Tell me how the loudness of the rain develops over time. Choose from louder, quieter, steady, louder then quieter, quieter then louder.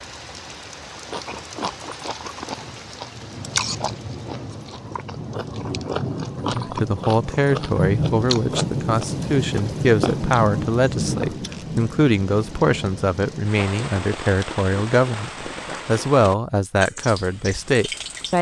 louder then quieter.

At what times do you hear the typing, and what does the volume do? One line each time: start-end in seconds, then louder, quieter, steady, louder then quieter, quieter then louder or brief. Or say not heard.
not heard.